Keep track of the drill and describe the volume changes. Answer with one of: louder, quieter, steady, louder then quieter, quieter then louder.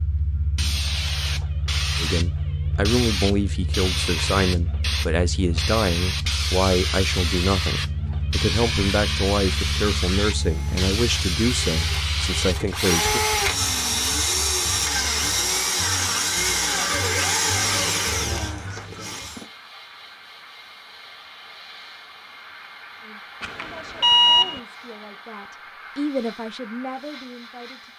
louder.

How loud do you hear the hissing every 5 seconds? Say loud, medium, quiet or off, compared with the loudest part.
loud, loud, loud, quiet, quiet, quiet.